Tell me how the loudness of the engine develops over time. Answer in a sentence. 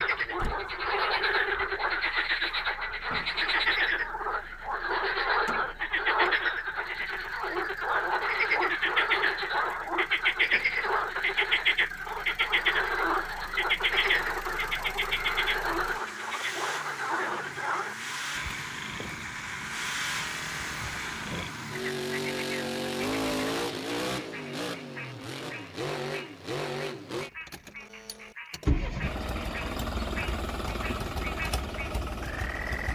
The volume of the engine goes up.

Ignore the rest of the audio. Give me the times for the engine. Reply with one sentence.
You can hear the engine from 0.0 to 32.8 s.